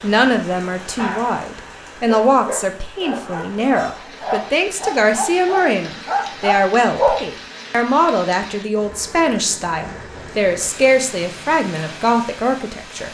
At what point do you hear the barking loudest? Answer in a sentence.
The loudest moment of the barking is at 7 seconds.